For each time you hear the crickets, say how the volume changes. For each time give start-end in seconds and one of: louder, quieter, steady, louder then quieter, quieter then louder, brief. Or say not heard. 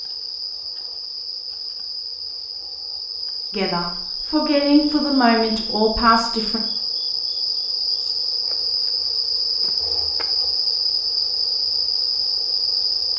0.0-13.1 louder.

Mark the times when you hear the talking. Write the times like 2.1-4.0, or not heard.
3.5-6.6.